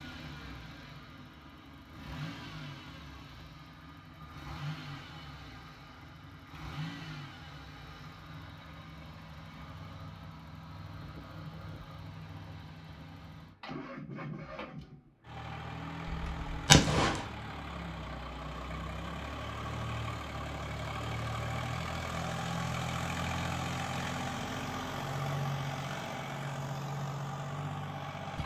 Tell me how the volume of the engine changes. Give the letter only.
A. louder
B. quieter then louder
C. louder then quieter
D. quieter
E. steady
A.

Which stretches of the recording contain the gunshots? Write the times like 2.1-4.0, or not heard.
16.1-17.2.